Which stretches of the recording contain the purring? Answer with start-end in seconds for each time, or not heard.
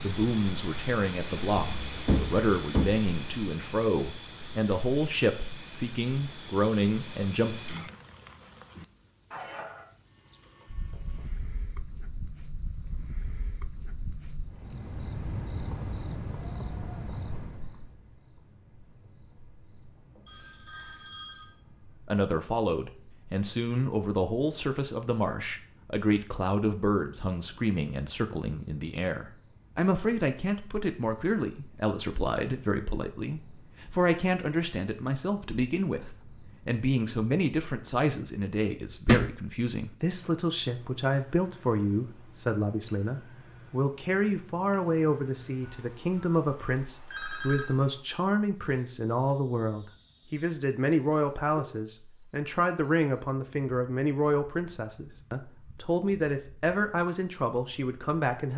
not heard.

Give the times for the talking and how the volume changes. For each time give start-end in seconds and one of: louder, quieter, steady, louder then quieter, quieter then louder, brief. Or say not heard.
0.0-7.5 steady
22.1-58.5 steady.